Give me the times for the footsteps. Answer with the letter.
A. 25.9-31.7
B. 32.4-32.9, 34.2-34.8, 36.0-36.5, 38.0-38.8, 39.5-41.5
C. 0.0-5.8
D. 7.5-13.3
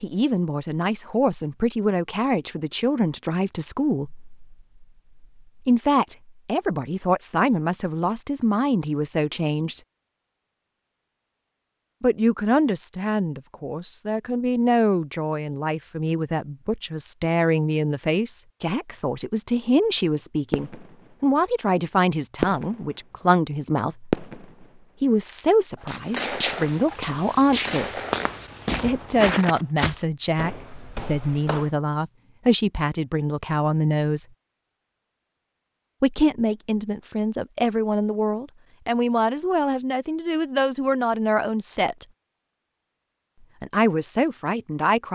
A.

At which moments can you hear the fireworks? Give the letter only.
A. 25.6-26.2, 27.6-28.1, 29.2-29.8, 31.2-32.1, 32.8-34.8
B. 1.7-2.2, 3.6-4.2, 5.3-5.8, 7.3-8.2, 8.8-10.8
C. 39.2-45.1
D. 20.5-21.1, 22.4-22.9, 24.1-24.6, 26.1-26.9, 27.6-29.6
D.